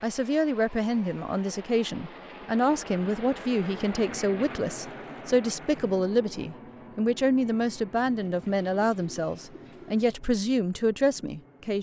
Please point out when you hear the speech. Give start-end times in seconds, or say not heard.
0.0-11.7.